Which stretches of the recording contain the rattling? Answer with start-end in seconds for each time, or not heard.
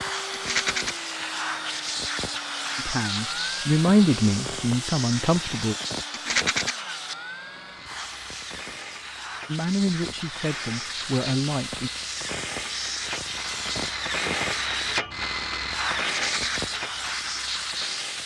0.3-0.9, 6.1-6.8, 16.0-16.6.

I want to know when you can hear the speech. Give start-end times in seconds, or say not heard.
2.8-5.8, 9.4-11.9.